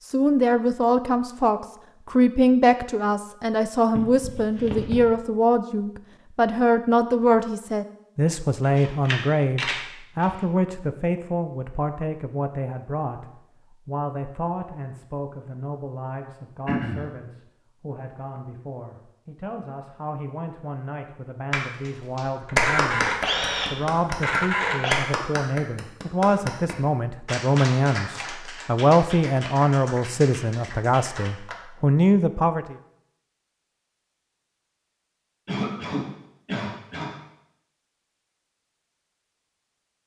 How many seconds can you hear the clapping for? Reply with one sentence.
You can hear the clapping for 10 seconds altogether.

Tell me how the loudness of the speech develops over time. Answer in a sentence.
The volume of the speech goes down, then up.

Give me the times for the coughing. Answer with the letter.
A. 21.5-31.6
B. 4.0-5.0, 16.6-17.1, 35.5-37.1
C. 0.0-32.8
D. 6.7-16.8
B.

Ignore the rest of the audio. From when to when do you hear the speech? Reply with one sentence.
You can hear the speech from 0.0 to 32.8 s.